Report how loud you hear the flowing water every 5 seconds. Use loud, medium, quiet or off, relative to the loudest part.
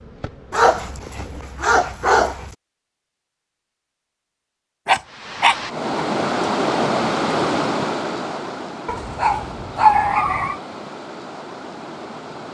off, loud, medium.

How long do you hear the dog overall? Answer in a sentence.
You can hear the dog for 5 seconds altogether.